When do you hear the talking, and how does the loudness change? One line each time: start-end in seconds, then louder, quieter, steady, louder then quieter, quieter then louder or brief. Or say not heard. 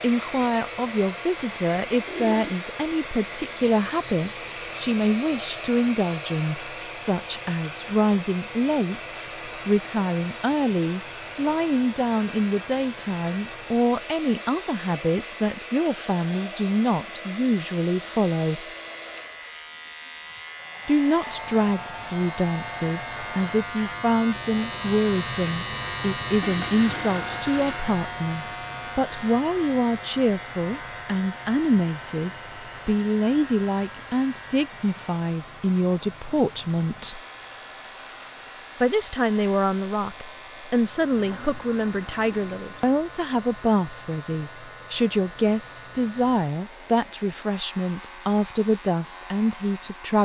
0.0-18.6 steady
20.9-37.2 steady
38.8-50.2 steady.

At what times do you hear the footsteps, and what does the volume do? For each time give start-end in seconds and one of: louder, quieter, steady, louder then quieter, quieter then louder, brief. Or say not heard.
not heard.